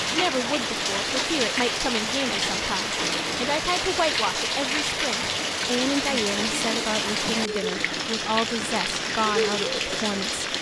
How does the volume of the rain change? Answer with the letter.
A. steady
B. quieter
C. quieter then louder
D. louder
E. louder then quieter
A.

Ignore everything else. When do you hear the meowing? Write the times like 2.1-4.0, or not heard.
not heard.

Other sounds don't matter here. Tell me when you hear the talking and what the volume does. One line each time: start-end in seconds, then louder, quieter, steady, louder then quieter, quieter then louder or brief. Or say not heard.
0.1-10.4 steady.